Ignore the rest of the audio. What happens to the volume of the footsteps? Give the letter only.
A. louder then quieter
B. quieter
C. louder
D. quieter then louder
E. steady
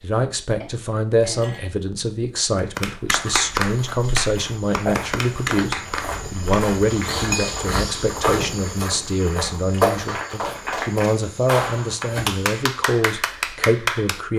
A.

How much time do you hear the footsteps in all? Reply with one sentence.
The footsteps can be heard for 9 seconds in total.